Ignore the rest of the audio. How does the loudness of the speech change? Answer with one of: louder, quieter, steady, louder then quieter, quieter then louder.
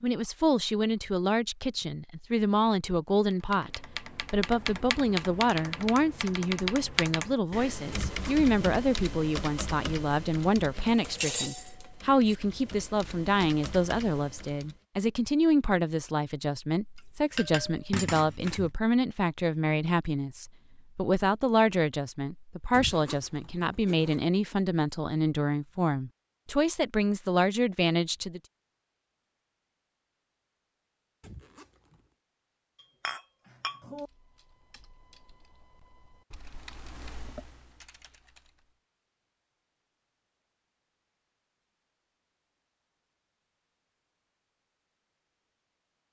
steady.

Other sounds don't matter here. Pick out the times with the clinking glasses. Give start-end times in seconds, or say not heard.
10.9-12.3, 17.4-18.7, 33.0-34.1.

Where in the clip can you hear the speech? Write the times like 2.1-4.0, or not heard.
0.0-28.4.